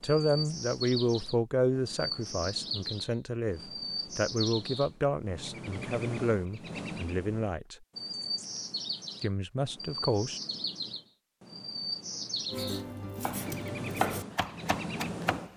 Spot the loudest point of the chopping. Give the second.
14 s.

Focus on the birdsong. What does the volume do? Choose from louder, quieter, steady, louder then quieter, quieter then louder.
steady.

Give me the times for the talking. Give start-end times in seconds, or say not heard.
0.0-7.8, 9.2-10.4.